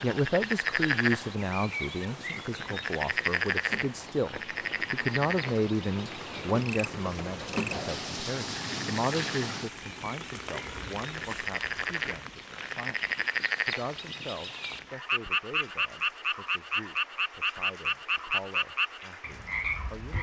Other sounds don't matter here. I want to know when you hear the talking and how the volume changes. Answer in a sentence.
You can hear the talking from 0.0 to 20.1 s, getting quieter.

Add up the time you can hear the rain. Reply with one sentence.
The rain can be heard for 20 seconds in total.